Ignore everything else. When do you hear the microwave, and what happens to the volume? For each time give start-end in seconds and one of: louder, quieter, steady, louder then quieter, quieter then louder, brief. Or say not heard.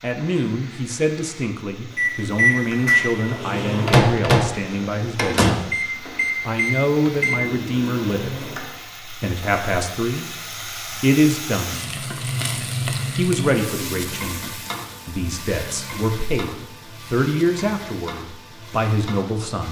1.9-8.8 quieter.